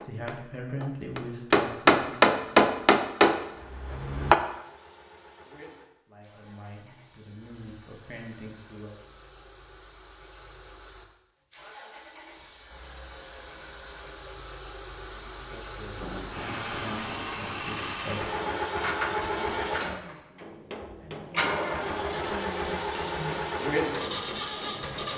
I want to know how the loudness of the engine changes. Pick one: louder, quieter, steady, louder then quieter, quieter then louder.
louder.